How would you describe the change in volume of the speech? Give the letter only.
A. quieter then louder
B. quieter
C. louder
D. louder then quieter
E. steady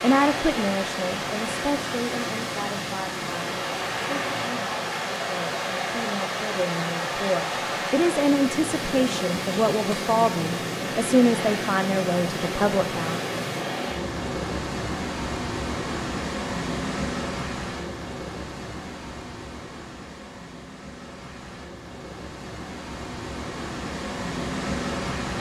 A.